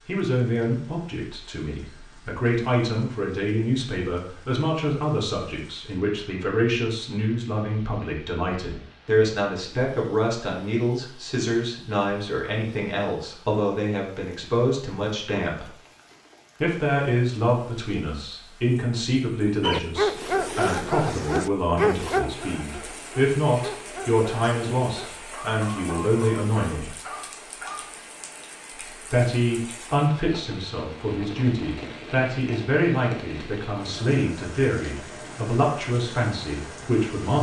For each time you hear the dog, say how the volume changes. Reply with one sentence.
The dog can be heard from 19.6 to 27.9 s, getting quieter.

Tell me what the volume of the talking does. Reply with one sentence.
The volume of the talking stays about the same.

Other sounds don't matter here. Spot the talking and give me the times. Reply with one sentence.
The talking can be heard from 0.1 to 15.7 s, from 16.6 to 26.9 s and from 28.7 to 37.3 s.